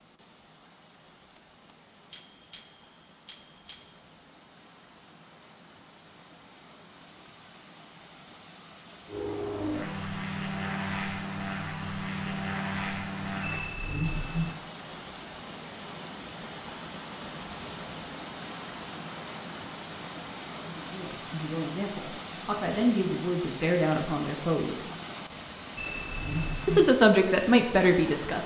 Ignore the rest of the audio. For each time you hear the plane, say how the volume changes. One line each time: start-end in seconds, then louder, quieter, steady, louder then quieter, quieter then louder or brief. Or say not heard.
9.1-13.7 steady.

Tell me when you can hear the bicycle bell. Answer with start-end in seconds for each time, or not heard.
1.4-4.0, 13.4-14.6, 25.8-26.9.